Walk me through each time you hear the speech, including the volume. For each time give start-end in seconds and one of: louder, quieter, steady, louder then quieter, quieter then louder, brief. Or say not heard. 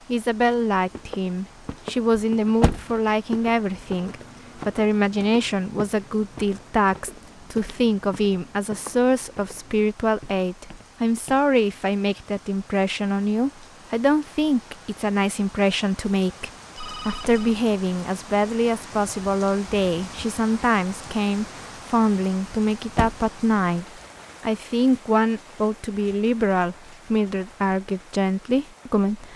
0.1-29.3 steady.